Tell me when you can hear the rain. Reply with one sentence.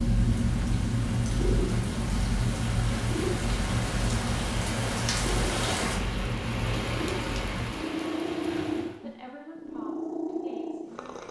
You can hear the rain from 0.0 to 9.0 s.